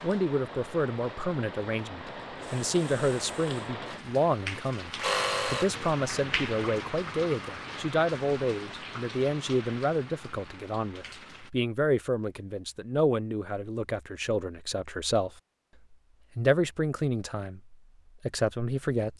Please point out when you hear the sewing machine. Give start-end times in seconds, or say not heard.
2.4-6.0.